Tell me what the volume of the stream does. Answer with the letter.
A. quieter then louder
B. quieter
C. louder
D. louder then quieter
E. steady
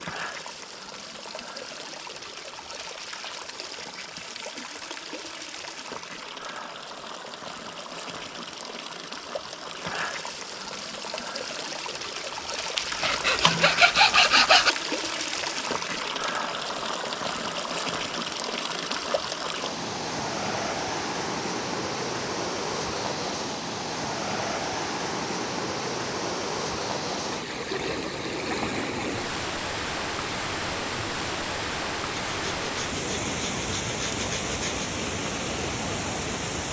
C.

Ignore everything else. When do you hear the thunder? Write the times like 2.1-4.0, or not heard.
not heard.